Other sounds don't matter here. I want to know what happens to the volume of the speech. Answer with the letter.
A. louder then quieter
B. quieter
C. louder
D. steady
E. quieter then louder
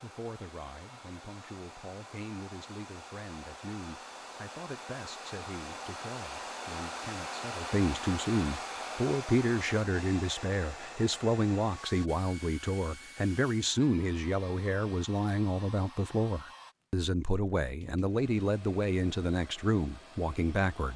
C.